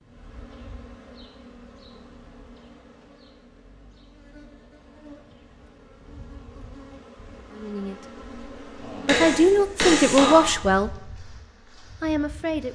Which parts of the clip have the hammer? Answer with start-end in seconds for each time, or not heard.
9.1-10.8.